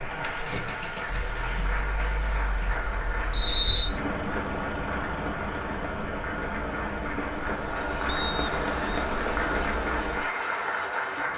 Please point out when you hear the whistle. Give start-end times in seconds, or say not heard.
3.3-3.9, 8.1-9.1.